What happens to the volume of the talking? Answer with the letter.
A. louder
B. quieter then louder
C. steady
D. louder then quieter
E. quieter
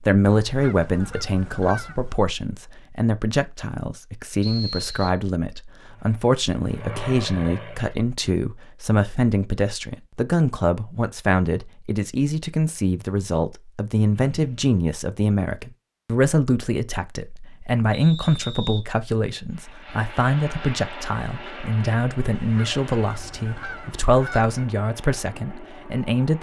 C.